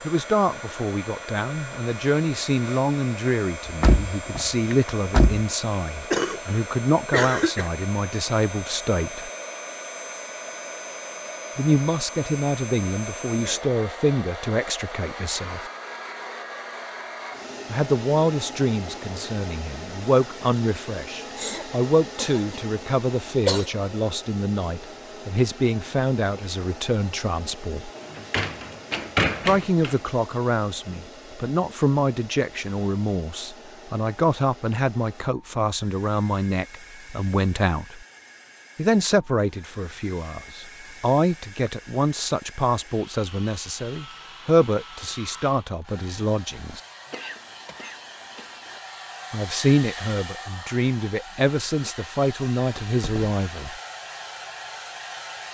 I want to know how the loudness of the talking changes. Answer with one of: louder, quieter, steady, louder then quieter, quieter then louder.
steady.